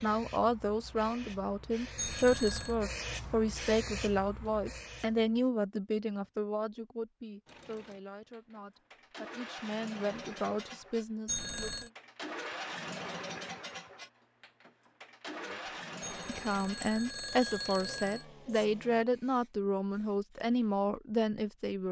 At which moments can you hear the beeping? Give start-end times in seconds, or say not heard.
1.9-2.8, 11.2-11.9, 16.0-18.2.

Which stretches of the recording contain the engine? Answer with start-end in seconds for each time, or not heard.
7.5-19.1.